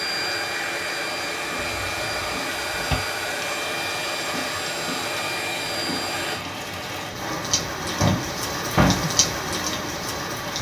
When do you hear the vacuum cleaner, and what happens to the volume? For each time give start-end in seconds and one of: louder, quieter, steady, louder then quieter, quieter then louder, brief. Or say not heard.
0.0-6.5 steady.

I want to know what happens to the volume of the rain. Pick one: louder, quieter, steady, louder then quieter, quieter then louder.
louder.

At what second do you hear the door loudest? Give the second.
9 s.